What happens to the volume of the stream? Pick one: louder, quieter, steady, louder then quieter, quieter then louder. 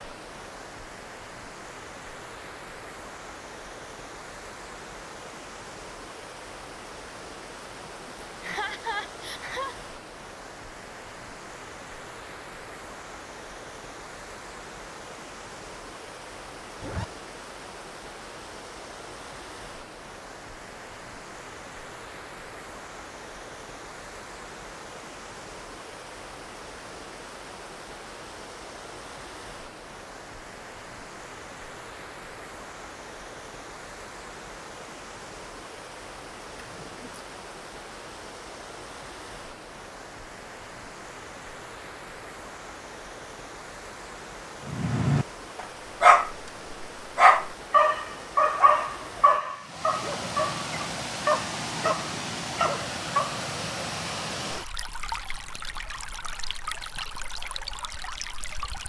louder.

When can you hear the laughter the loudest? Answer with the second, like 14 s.
9 s.